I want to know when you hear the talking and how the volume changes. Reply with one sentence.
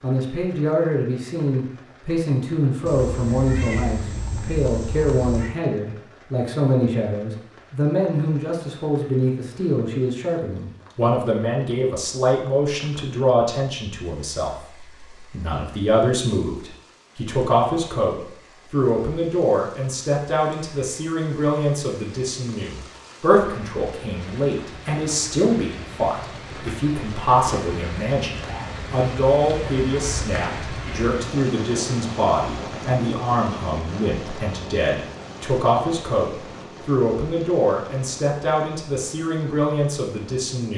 You can hear the talking from 0.0 to 40.7 s, at a steady volume.